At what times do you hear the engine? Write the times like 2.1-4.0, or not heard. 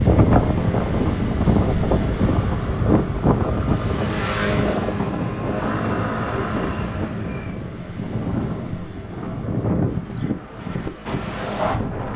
0.0-12.1.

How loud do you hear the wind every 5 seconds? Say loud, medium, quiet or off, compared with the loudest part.
loud, medium, medium.